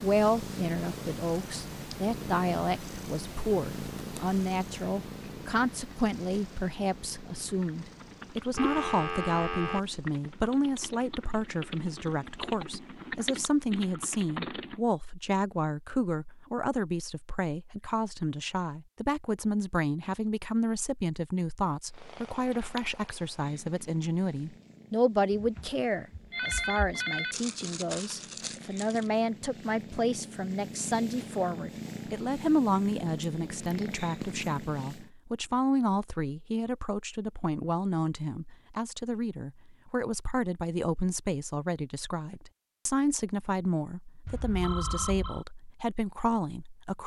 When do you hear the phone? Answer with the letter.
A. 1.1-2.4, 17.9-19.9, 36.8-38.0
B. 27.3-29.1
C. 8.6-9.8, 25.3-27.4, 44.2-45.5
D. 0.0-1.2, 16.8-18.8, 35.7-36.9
C.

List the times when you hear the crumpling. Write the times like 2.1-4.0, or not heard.
27.3-29.1.